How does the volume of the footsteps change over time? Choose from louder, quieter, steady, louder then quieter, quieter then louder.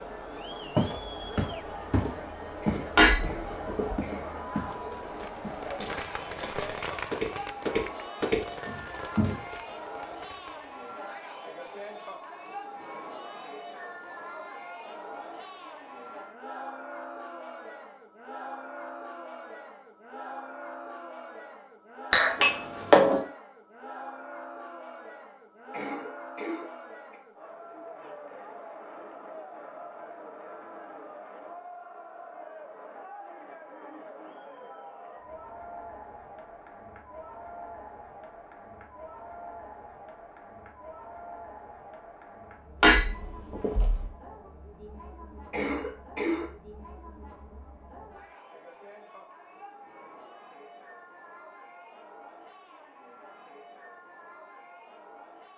quieter then louder.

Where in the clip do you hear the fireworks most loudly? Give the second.
7 s.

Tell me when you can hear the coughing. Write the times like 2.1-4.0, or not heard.
2.6-4.5, 25.7-27.2, 45.5-46.5.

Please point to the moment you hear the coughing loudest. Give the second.
46 s.